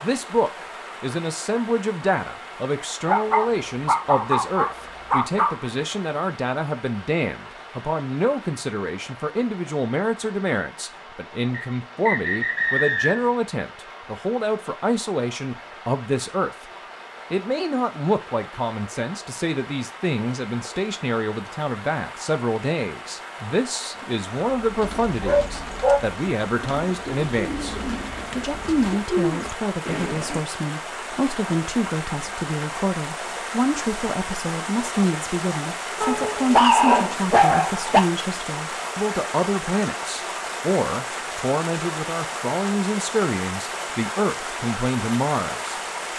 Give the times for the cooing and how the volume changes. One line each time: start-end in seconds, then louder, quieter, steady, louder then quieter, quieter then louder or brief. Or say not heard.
23.9-30.4 louder.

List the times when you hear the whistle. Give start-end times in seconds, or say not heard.
11.5-13.3.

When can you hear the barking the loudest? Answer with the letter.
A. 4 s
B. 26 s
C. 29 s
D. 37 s
D.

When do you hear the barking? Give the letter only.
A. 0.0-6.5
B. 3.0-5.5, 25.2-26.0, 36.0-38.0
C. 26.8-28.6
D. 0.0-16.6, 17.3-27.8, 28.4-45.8
B.